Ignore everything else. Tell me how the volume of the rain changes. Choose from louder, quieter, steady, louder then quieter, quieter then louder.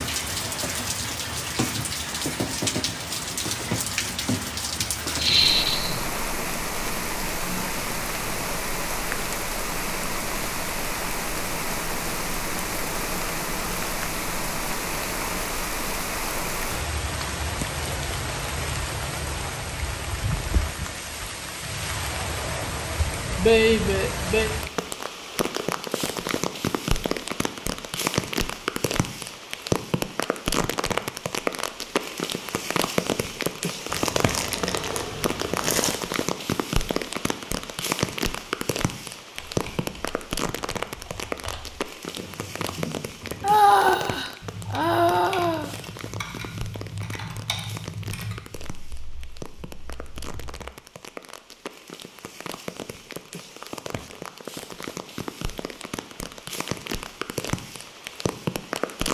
quieter.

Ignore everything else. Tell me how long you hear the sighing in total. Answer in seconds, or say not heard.
4 s.